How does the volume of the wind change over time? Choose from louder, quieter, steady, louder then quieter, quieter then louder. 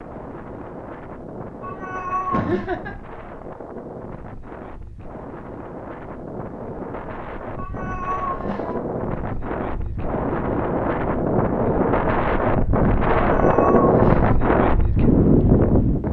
louder.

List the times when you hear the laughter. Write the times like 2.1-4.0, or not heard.
2.3-3.0.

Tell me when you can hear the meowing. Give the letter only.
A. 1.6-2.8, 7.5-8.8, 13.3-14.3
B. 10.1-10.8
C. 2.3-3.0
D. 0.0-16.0
A.